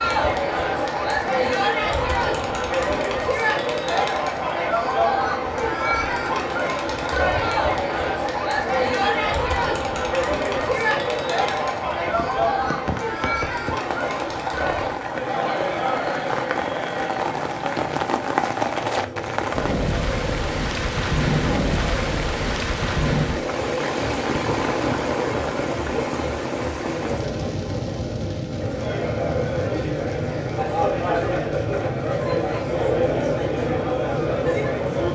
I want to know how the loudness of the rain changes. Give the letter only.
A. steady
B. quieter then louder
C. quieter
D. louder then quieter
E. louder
D.